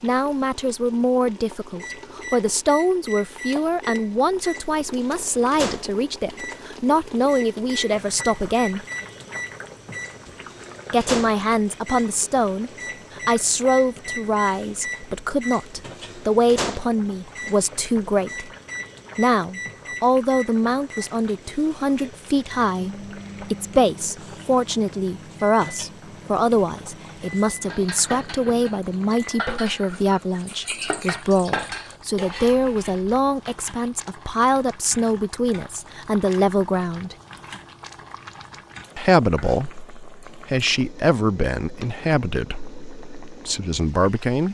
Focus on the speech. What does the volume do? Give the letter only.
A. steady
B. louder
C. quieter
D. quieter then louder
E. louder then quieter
A.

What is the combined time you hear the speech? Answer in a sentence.
The speech can be heard for 40 seconds in total.